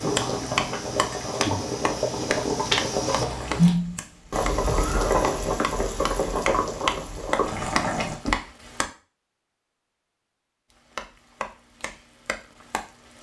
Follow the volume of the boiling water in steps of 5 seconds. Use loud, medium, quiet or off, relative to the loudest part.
loud, loud, off.